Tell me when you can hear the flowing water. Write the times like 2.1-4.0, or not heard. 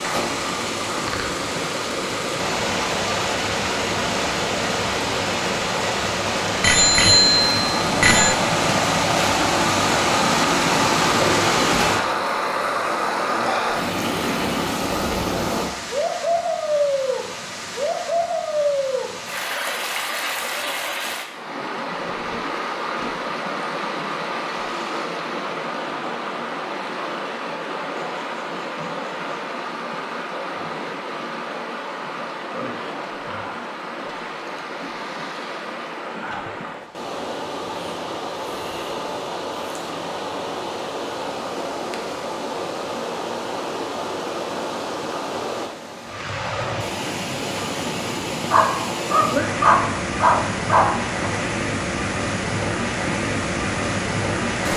0.0-54.7.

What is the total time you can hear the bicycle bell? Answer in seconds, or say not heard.
2 s.